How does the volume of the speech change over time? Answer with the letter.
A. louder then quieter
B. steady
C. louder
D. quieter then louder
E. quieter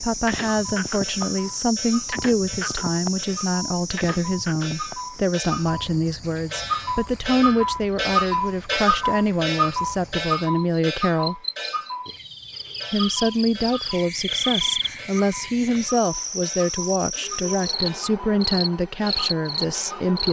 B.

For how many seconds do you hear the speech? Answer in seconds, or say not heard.
19 s.